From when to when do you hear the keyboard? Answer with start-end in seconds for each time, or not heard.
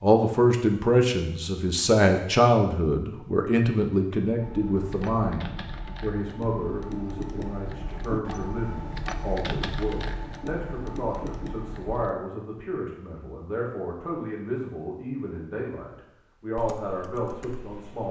4.3-12.1, 16.6-18.0.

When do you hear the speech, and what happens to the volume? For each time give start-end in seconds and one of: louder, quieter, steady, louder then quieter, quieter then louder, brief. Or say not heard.
0.0-18.0 quieter.